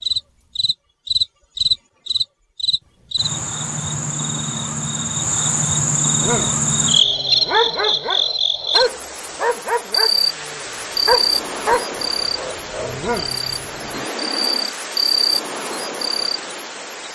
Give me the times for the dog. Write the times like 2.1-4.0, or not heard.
6.2-14.1.